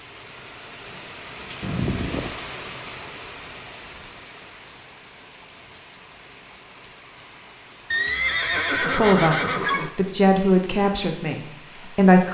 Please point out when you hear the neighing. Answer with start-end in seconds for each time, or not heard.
1.6-2.4, 7.9-9.9.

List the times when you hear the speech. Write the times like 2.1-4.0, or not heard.
8.8-12.2.